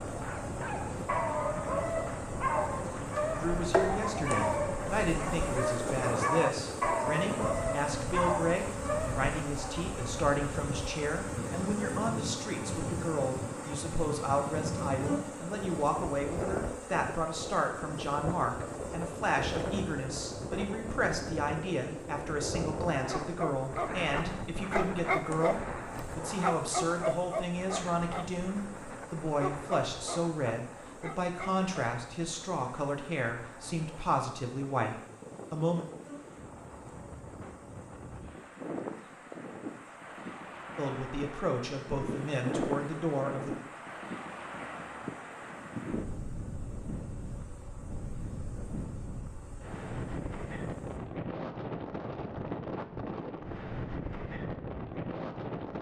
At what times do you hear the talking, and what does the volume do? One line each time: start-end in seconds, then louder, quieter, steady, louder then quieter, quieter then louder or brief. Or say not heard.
3.4-35.9 steady
40.8-43.5 brief.